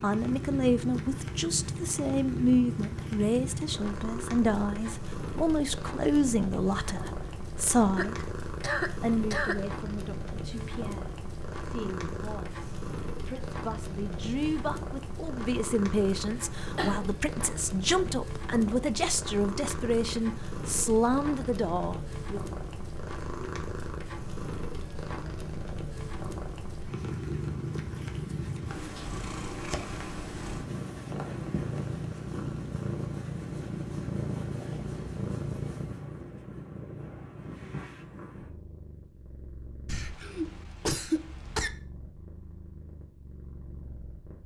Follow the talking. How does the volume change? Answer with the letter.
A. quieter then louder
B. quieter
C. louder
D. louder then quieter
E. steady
A.